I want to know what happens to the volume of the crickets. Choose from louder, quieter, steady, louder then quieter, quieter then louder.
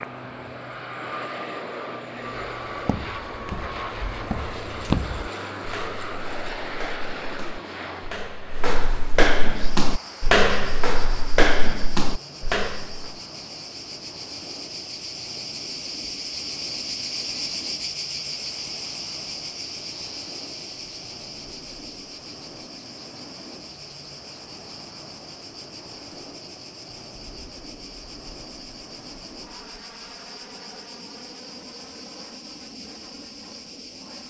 louder then quieter.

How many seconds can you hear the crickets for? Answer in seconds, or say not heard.
25 s.